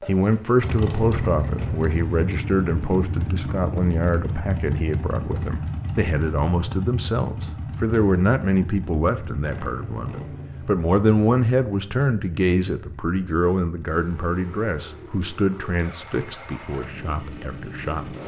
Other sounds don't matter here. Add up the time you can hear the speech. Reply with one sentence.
You can hear the speech for 18 seconds altogether.